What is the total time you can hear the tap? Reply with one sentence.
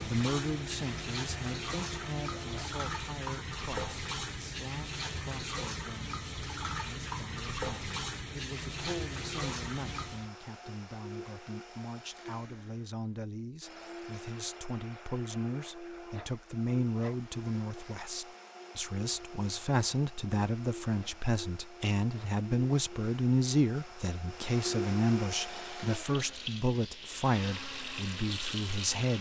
You can hear the tap for 14 seconds altogether.